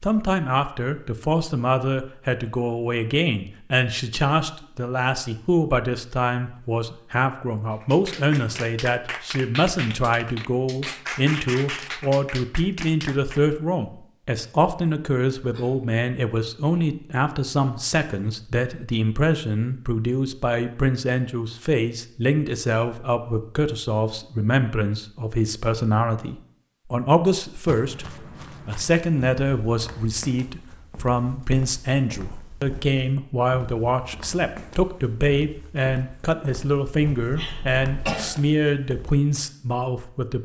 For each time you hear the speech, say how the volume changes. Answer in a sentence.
The speech can be heard from 0.0 to 40.3 s, at a steady volume.